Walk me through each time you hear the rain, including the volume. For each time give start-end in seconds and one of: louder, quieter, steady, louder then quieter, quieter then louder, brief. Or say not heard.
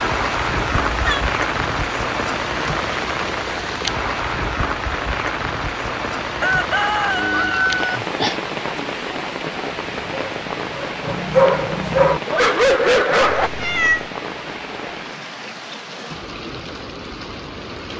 0.0-17.9 quieter.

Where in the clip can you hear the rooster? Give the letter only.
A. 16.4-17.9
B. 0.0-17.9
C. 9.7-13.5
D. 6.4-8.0
D.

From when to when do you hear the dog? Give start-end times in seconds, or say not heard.
9.7-13.5.